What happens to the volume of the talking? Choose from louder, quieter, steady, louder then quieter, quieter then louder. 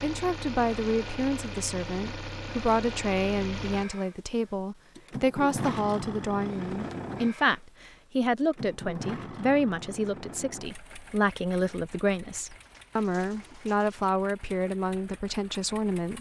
steady.